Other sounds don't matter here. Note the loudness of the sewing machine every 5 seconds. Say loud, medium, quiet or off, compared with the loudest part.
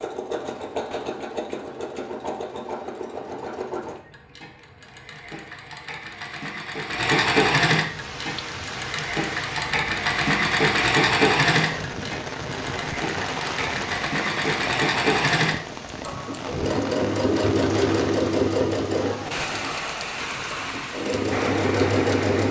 medium, loud, loud, loud, loud.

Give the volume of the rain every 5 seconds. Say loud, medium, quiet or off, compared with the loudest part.
off, medium, loud, loud, loud.